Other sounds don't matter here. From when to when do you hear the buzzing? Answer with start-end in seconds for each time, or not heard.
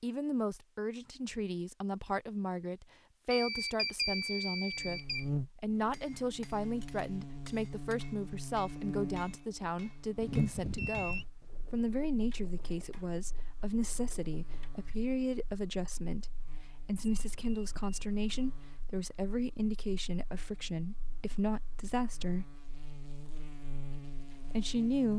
4.7-25.1.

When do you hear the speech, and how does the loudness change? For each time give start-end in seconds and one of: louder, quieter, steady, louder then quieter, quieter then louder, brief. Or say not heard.
0.0-22.4 steady
24.5-25.1 brief.